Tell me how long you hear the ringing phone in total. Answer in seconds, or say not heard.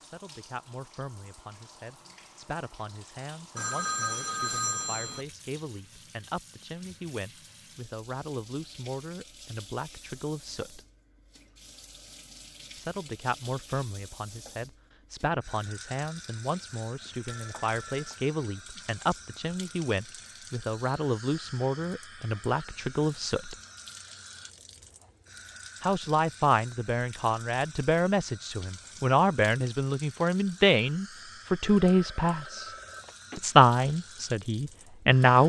5 s.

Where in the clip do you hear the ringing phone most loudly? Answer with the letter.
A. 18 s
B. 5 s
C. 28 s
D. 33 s
B.